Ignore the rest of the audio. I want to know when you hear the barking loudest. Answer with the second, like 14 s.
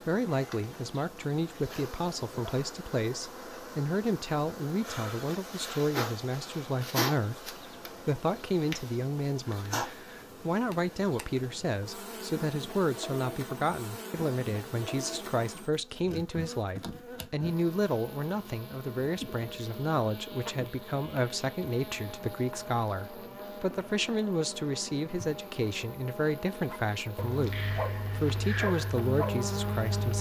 29 s.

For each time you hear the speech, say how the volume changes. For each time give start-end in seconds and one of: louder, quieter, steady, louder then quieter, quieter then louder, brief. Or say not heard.
0.1-30.1 steady.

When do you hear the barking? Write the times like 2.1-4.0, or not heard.
26.7-30.1.